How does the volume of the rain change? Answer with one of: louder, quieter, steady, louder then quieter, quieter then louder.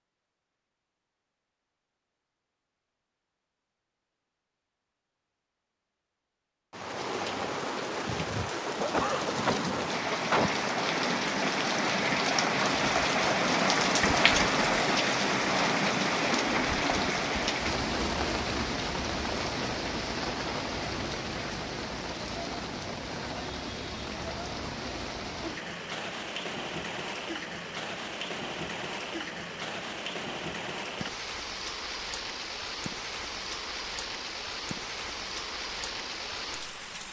quieter.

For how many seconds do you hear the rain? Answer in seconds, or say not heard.
30 s.